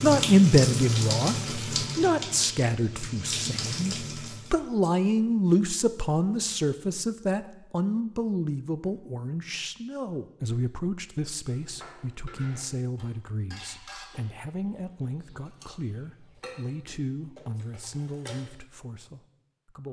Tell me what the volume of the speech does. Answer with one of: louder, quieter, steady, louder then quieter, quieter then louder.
quieter.